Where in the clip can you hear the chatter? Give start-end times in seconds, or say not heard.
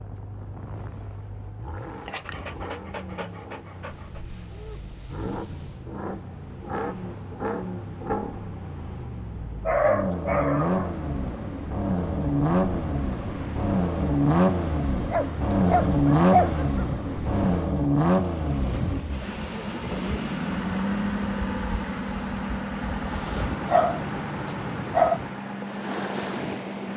not heard.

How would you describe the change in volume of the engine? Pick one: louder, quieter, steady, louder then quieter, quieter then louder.
louder then quieter.